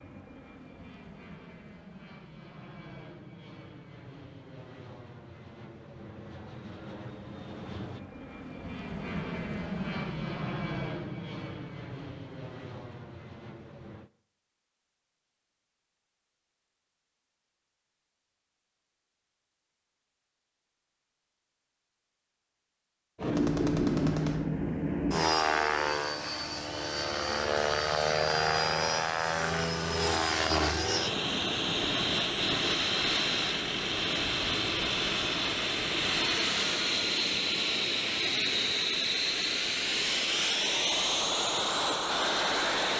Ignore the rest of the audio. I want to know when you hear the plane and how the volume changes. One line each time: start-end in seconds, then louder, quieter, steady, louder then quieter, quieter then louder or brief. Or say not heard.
0.0-14.1 louder then quieter
23.1-42.9 steady.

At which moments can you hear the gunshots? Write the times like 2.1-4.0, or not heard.
23.3-24.4.